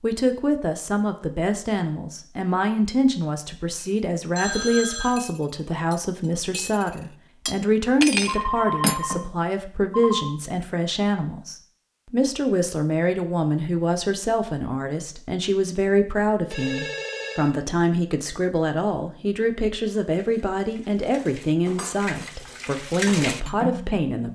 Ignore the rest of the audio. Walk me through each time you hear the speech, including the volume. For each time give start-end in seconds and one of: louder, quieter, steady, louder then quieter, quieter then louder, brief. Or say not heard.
0.0-24.3 steady.